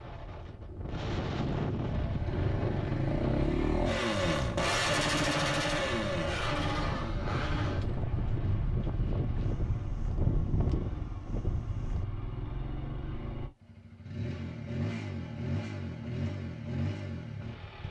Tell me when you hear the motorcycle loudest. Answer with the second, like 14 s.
5 s.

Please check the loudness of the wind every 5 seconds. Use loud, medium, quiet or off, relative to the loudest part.
loud, loud, loud, off.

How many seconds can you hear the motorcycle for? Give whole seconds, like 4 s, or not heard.
16 s.